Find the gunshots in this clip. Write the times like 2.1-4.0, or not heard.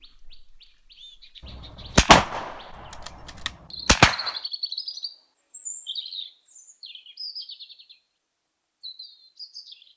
1.9-4.3.